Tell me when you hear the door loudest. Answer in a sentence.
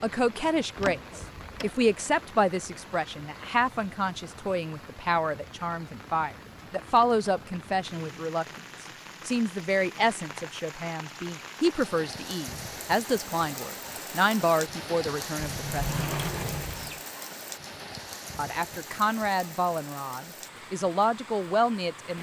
The loudest moment of the door is at 16 seconds.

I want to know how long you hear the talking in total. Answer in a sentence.
You can hear the talking for 19 seconds altogether.